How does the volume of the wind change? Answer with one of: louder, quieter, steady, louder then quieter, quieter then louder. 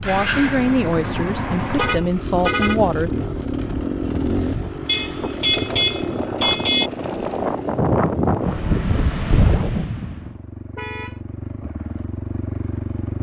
louder.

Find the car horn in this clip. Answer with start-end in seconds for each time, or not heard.
1.7-2.8, 4.8-6.9, 10.8-11.2.